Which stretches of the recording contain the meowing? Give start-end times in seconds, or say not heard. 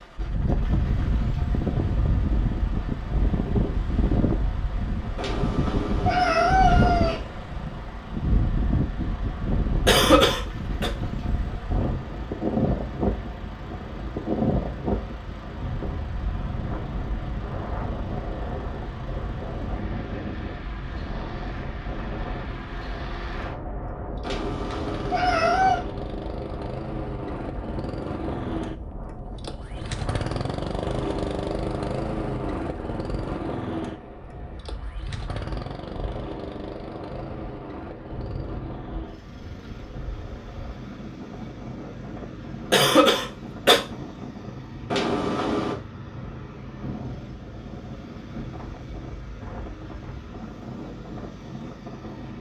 5.2-7.2, 24.2-25.9, 44.9-45.8.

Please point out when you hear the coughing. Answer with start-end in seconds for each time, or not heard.
9.8-10.9, 42.7-43.8.